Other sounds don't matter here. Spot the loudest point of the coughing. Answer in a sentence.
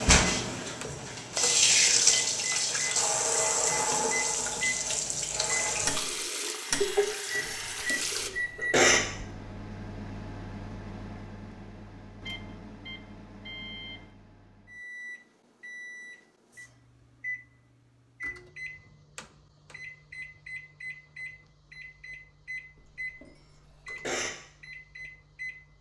The volume of the coughing peaks at 9 seconds.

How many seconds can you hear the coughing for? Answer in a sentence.
You can hear the coughing for 3 seconds altogether.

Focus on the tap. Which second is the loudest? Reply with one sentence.
The loudest moment of the tap is at 2 seconds.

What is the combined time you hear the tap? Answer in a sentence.
You can hear the tap for 8 seconds altogether.